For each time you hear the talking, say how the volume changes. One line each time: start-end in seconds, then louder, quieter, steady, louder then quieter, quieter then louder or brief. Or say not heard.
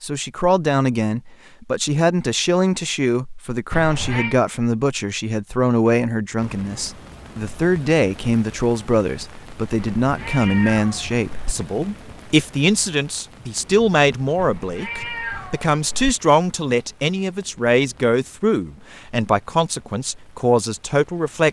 0.0-21.4 steady.